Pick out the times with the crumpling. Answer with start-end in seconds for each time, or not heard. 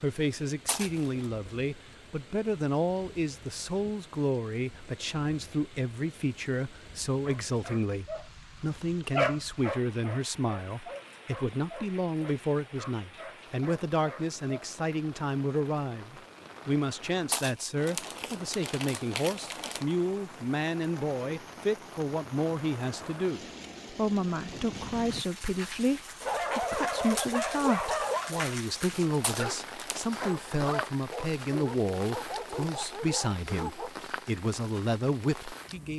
0.7-1.2, 17.3-19.9, 29.2-30.1.